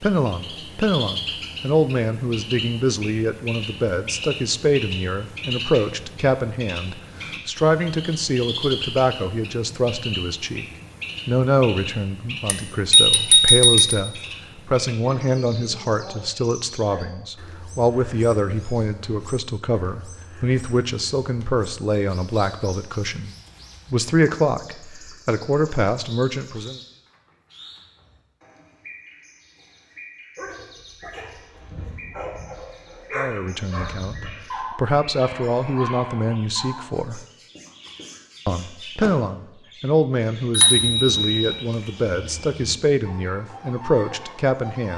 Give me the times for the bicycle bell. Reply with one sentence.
You can hear the bicycle bell from 12.4 to 13.9 s and from 40.5 to 41.4 s.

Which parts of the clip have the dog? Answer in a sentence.
You can hear the dog from 30.4 to 37.0 s.